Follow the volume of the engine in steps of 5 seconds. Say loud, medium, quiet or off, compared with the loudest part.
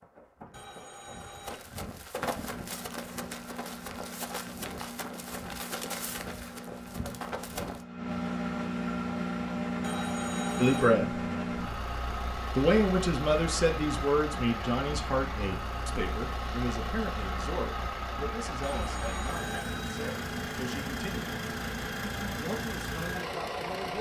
medium, loud, loud, loud, loud.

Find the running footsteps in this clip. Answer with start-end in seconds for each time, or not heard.
0.0-7.8.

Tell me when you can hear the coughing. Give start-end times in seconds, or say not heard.
not heard.